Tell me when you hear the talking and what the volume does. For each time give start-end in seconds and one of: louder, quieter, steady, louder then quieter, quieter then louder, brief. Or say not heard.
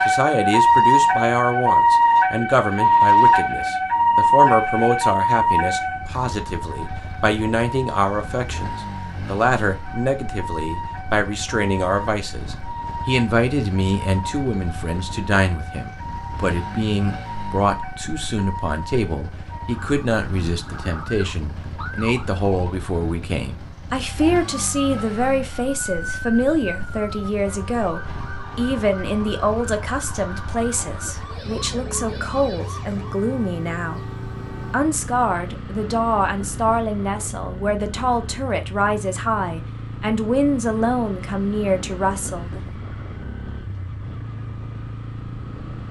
0.1-42.6 steady.